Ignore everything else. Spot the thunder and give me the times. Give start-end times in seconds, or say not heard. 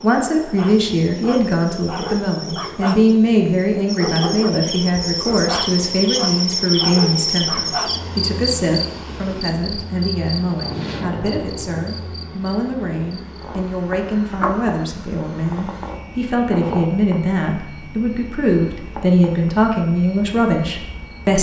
10.6-12.1.